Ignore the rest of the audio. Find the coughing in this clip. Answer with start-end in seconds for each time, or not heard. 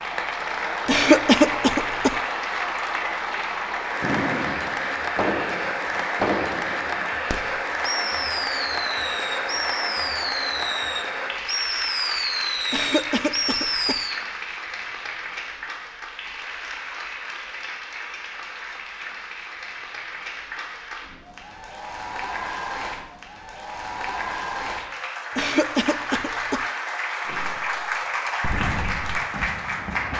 0.8-2.1, 12.7-14.0, 25.4-26.6.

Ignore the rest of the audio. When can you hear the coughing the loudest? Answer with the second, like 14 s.
1 s.